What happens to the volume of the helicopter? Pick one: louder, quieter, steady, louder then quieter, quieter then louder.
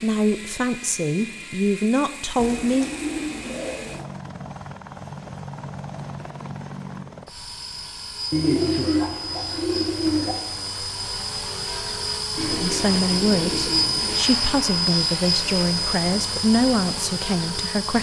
louder.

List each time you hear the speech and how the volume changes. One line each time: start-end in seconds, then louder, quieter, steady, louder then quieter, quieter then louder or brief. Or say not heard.
0.0-2.9 brief
12.6-17.9 steady.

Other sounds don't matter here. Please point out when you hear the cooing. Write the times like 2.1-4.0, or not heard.
2.4-4.0, 8.3-10.3, 12.3-14.2.